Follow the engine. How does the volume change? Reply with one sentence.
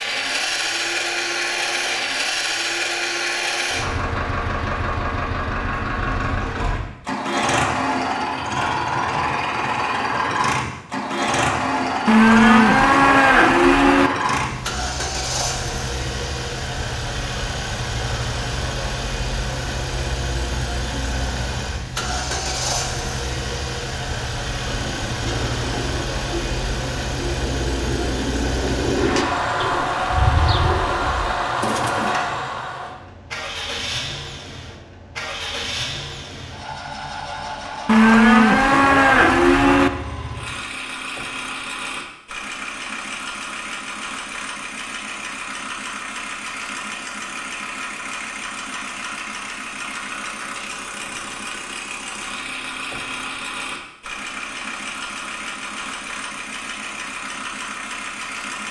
The volume of the engine goes down.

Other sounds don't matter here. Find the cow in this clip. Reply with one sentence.
You can hear the cow from 12.1 to 14.1 s and from 37.9 to 39.9 s.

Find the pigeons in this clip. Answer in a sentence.
You can hear the pigeons from 24.6 to 32.1 s.